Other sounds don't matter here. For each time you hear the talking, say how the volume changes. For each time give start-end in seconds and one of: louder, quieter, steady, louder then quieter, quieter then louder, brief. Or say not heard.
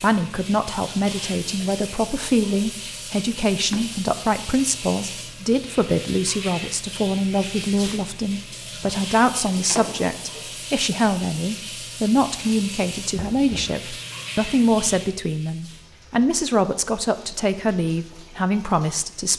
0.0-19.3 steady.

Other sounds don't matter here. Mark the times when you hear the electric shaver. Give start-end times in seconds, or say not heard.
not heard.